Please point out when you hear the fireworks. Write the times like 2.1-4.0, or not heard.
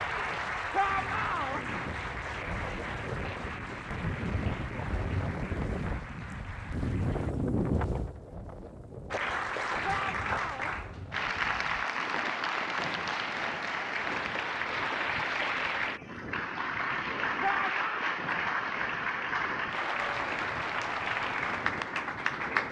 not heard.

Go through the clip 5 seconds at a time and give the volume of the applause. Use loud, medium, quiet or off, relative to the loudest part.
medium, medium, loud, loud, loud.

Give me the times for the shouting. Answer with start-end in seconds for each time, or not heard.
0.7-1.6, 9.8-10.7, 17.4-18.1.